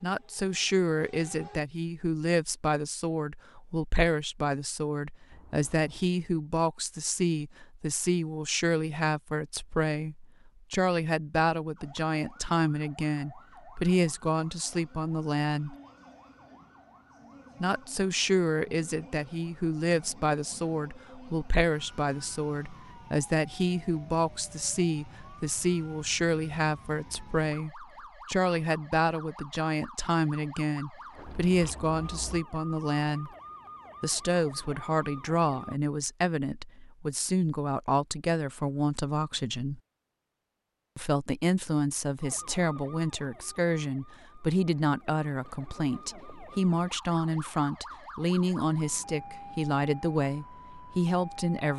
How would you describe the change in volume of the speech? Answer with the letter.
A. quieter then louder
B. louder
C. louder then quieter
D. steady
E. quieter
D.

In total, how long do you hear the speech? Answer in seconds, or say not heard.
48 s.